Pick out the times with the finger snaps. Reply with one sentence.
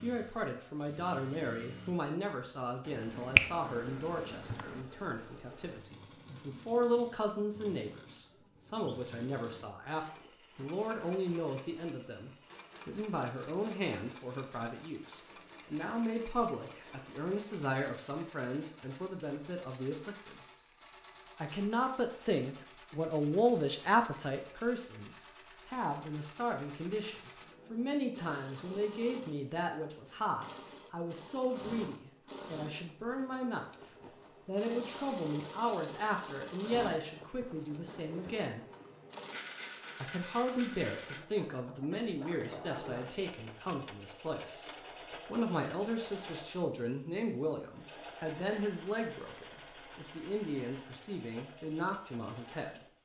You can hear the finger snaps from 2.9 to 4.8 s.